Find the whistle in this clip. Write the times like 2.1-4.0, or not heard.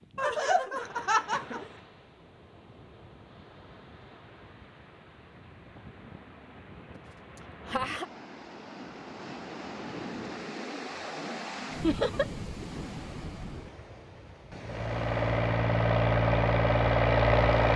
not heard.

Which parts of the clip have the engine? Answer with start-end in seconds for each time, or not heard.
14.6-17.7.